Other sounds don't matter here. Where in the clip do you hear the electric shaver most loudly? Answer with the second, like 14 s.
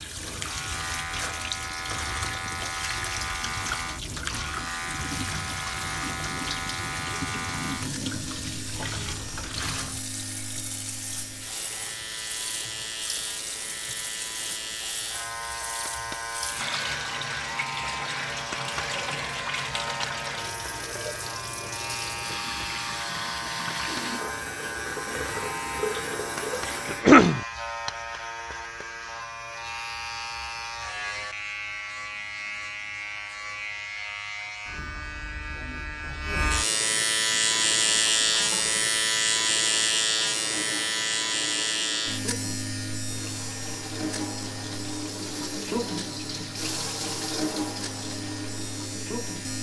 38 s.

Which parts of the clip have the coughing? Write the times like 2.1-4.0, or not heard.
26.9-27.4.